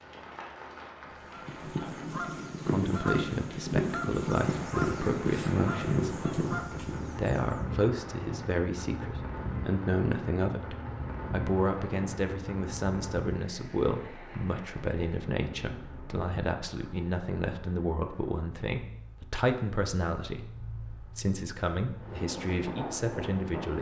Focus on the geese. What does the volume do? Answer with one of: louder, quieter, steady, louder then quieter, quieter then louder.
steady.